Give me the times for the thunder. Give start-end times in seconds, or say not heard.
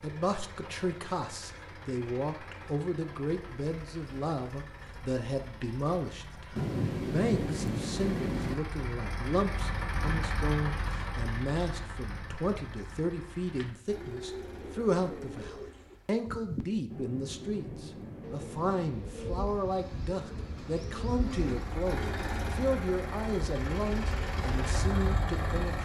6.5-8.6, 16.9-18.9.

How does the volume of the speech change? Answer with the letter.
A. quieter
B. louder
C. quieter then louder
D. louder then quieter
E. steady
E.